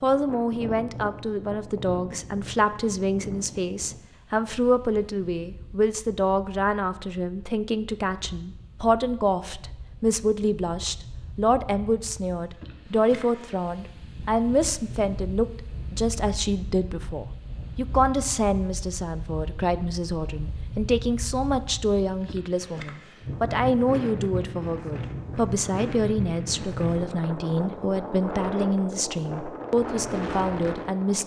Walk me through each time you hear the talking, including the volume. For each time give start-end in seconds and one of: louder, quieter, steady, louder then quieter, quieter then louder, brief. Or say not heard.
0.0-31.2 steady.